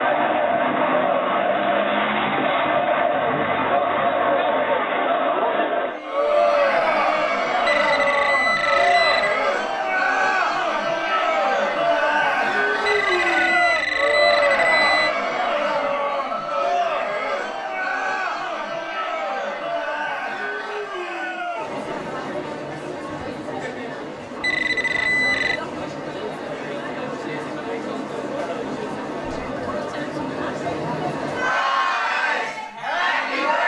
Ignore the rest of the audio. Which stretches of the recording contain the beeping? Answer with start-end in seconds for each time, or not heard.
7.7-9.4, 12.8-15.1, 24.4-25.6.